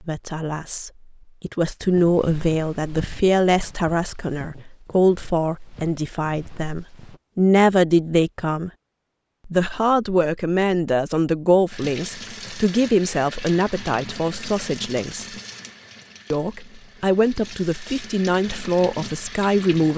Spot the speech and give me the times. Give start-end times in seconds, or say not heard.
0.1-8.7, 9.4-15.2, 16.3-19.9.